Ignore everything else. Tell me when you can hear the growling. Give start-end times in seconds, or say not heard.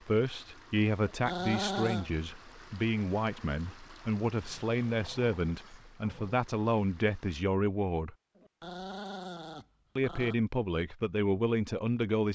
1.1-2.1, 4.4-6.4, 8.3-10.3.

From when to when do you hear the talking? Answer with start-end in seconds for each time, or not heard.
0.1-8.2, 9.9-12.3.